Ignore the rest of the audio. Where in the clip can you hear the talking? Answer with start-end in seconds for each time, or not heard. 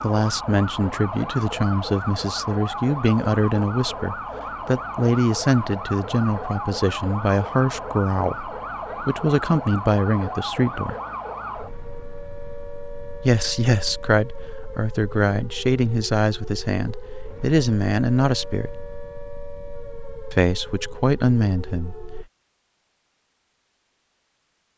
0.0-10.9, 13.2-18.8, 20.3-22.2.